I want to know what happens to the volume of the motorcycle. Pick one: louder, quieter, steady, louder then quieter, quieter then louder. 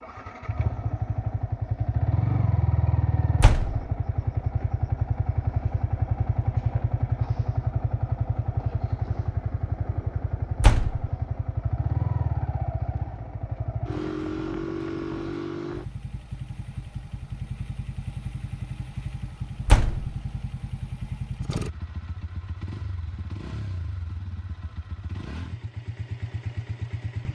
quieter.